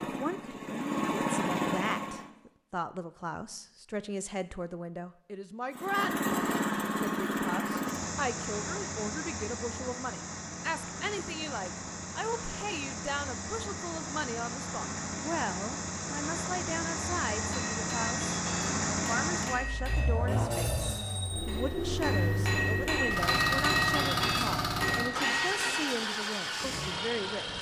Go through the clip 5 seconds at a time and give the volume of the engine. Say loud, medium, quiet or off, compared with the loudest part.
loud, loud, medium, loud, loud, loud.